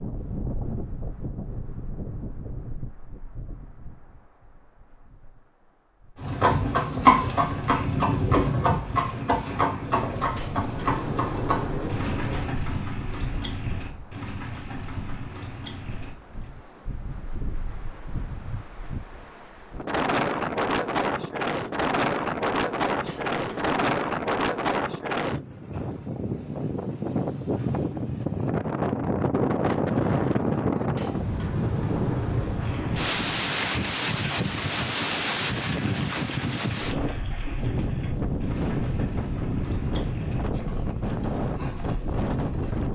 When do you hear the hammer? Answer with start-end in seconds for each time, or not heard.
not heard.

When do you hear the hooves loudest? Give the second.
7 s.